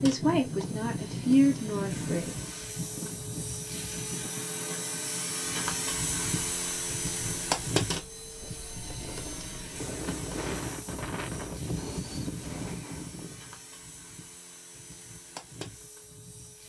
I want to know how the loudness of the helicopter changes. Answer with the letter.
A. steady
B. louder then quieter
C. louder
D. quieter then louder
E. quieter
B.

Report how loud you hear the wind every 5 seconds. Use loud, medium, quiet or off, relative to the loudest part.
loud, medium, loud, off.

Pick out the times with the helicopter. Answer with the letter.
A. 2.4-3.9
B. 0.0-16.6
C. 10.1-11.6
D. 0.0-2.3
B.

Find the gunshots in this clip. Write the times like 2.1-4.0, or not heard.
10.1-11.6.